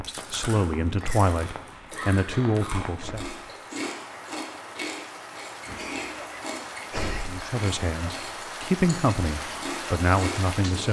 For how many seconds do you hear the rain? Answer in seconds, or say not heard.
11 s.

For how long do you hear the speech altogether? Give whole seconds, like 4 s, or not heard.
7 s.